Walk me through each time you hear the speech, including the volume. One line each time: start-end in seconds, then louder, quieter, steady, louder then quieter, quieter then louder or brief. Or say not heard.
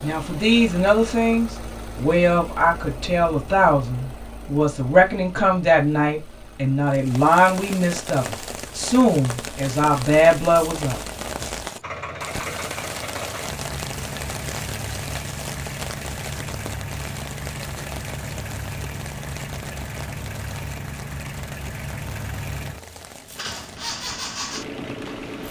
0.0-11.0 steady.